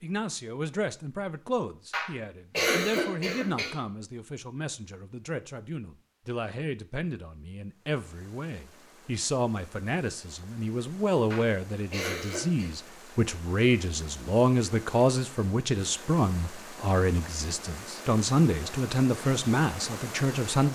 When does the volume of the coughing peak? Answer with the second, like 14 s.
3 s.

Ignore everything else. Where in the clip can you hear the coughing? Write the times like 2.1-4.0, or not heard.
1.9-3.8, 11.3-12.8.